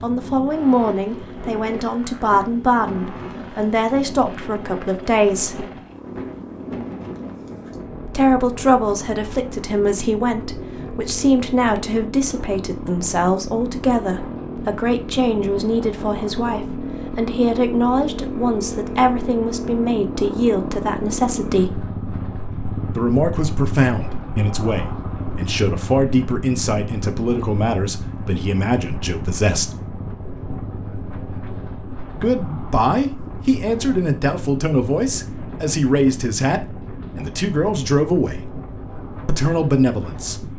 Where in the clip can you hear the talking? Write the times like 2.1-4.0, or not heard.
0.0-5.7, 8.1-21.9, 22.9-29.7, 32.1-38.5, 39.2-40.4.